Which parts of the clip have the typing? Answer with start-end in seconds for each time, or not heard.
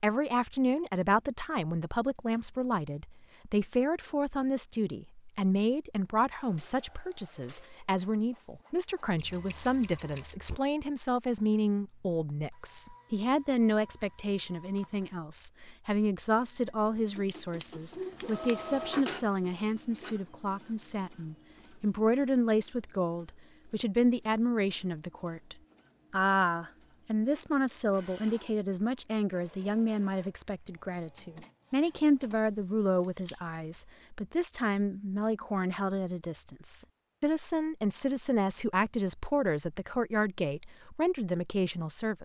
not heard.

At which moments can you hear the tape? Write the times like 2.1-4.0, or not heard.
not heard.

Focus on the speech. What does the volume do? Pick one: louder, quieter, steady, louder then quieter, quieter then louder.
steady.